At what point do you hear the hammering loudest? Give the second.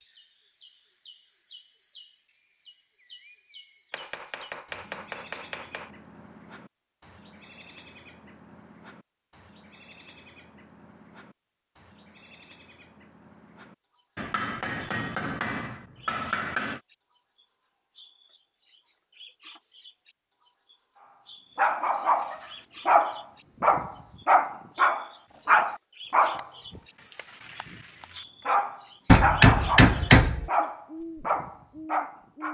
30 s.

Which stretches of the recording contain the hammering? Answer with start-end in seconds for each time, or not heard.
3.9-5.9, 14.2-16.8, 29.1-30.5.